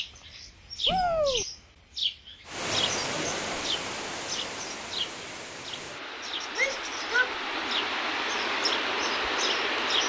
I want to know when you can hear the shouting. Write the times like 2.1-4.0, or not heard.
0.8-1.4, 6.5-7.8.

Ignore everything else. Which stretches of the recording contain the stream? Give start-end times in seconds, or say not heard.
2.5-10.0.